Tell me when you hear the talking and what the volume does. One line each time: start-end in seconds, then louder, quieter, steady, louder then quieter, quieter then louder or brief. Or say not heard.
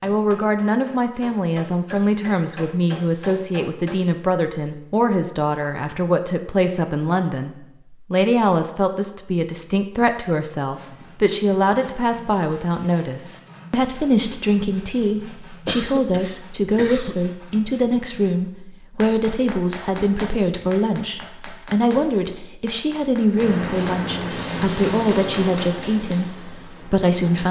0.0-27.4 steady.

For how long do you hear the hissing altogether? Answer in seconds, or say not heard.
4 s.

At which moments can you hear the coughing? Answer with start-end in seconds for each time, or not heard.
15.7-17.1.